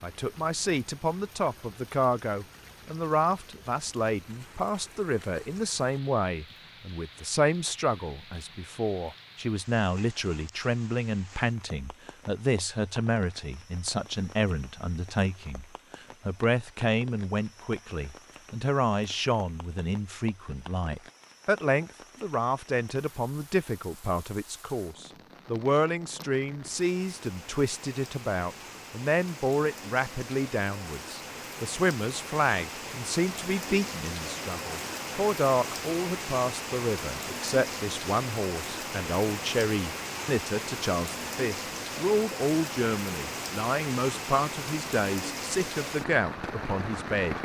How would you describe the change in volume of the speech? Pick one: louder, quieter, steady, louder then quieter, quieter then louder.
steady.